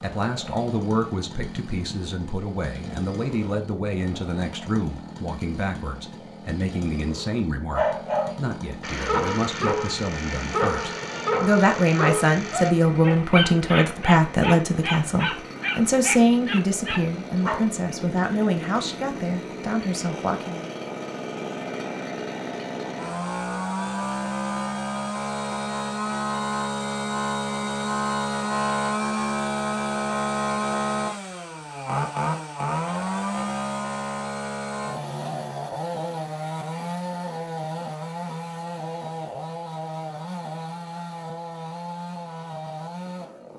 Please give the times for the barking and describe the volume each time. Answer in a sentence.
You can hear the barking from 7.7 to 17.6 s, at a steady volume.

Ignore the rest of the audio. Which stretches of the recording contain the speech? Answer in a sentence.
The speech can be heard from 0.0 to 20.7 s.